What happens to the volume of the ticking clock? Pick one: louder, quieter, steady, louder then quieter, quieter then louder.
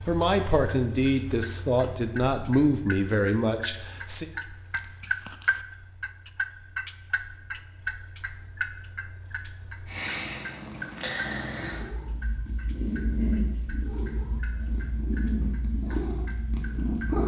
louder then quieter.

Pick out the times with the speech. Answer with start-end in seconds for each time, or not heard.
0.1-4.2.